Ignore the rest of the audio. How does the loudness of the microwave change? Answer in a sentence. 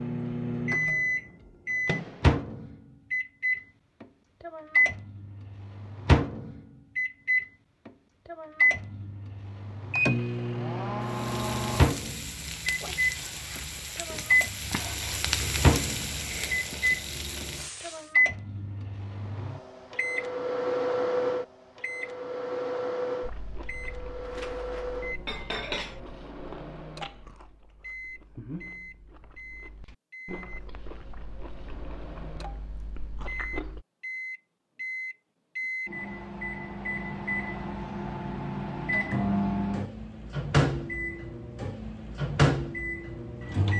The volume of the microwave goes down, then up.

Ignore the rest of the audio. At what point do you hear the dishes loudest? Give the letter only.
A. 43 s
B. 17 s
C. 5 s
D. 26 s
D.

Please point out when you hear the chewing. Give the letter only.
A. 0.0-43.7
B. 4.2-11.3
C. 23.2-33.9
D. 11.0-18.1
C.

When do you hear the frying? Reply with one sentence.
You can hear the frying from 11.0 to 18.1 s.